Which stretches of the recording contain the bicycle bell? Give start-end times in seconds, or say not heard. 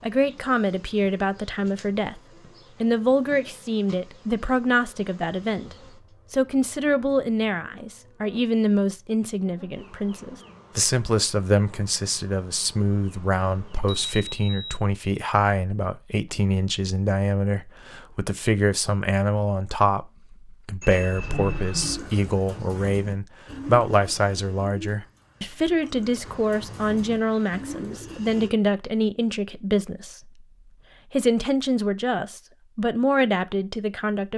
13.7-14.8, 20.8-21.9.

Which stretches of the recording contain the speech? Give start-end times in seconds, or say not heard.
0.0-30.4, 31.1-34.3.